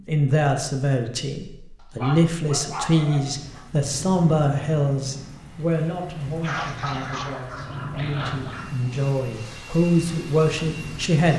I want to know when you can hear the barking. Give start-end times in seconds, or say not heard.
1.9-3.6, 6.4-8.7.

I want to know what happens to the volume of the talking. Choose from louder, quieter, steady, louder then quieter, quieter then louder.
quieter then louder.